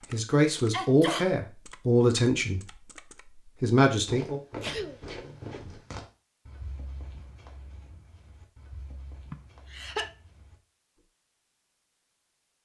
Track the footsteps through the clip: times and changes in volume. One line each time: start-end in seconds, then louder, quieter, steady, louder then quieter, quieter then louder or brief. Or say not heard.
3.9-11.1 quieter.